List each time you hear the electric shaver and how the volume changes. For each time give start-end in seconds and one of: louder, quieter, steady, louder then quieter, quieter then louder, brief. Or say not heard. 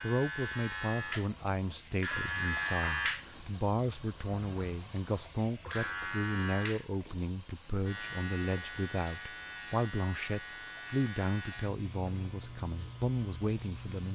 0.0-14.1 quieter.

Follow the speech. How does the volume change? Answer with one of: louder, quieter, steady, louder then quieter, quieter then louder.
steady.